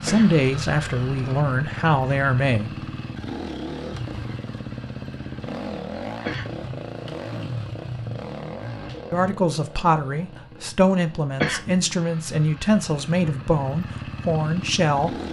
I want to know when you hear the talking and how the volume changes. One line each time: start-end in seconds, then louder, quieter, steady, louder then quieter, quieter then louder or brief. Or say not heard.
0.0-2.8 brief
9.1-15.2 steady.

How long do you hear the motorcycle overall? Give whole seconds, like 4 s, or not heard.
15 s.